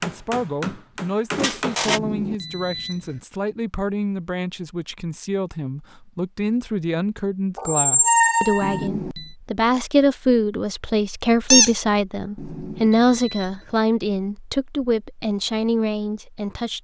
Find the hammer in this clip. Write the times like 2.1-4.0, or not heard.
0.0-1.9.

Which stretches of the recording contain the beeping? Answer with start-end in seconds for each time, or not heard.
1.9-3.2, 8.6-9.3, 12.3-13.8.